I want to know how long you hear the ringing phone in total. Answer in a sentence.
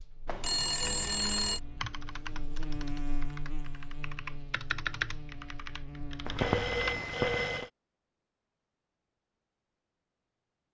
You can hear the ringing phone for 3 seconds altogether.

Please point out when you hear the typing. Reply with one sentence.
You can hear the typing from 0.8 to 7.0 s.